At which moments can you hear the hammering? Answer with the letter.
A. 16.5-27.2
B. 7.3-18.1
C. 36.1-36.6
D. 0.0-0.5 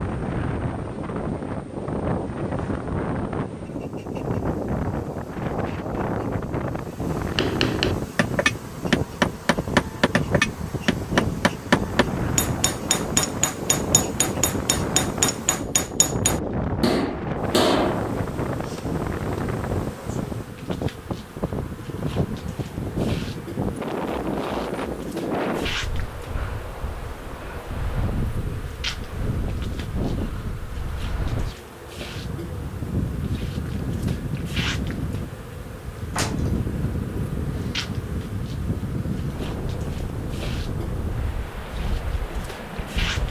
B.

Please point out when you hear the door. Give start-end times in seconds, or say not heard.
36.1-36.6.